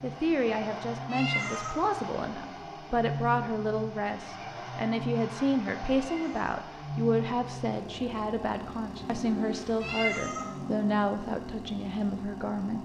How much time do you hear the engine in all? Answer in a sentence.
The engine can be heard for 13 seconds in total.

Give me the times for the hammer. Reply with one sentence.
You can't hear the hammer here.